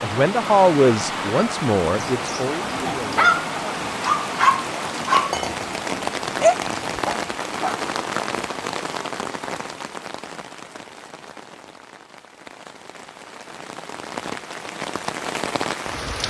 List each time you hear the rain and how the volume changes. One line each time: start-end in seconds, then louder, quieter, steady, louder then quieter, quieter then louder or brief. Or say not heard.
0.0-16.2 quieter then louder.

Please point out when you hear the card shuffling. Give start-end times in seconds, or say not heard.
not heard.